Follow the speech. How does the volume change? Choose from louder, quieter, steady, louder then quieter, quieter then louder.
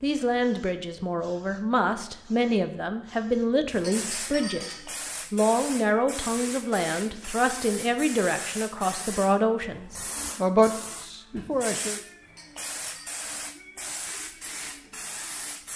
steady.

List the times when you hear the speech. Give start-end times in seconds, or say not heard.
0.0-4.7, 5.3-12.0.